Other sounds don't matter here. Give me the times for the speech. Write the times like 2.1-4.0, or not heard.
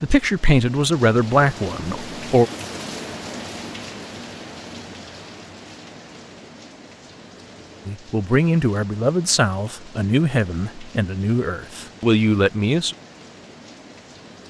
0.0-2.5, 7.8-12.9.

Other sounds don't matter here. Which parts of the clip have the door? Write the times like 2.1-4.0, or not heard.
not heard.